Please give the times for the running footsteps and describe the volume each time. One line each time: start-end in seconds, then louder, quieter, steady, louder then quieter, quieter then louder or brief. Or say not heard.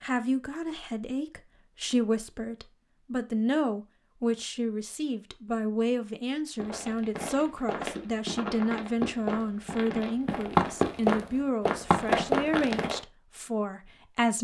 6.6-13.0 louder.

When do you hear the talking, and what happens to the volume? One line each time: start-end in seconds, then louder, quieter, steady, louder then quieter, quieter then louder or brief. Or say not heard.
0.0-14.3 steady.